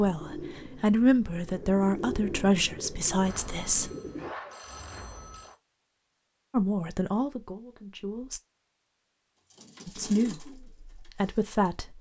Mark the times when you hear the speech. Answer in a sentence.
You can hear the speech from 0.0 to 3.9 s, from 6.5 to 8.4 s and from 9.8 to 11.9 s.